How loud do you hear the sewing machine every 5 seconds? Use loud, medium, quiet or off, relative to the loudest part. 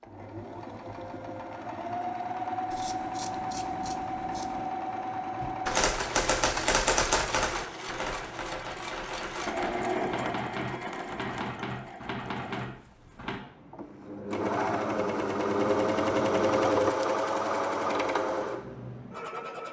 medium, medium, medium, loud.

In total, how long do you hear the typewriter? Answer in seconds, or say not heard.
8 s.